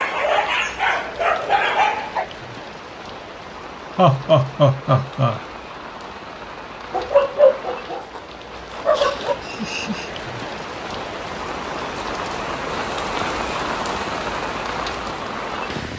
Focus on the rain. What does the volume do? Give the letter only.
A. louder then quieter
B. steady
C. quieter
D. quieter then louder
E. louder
E.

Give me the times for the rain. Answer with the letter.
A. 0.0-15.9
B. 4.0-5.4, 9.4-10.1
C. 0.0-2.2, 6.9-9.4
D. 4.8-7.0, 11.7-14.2
A.